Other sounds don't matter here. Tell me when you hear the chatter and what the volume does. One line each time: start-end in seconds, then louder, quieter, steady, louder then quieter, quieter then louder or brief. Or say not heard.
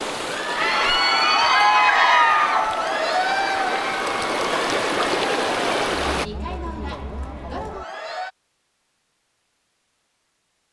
0.2-8.3 quieter.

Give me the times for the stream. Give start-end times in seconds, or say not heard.
0.0-6.2.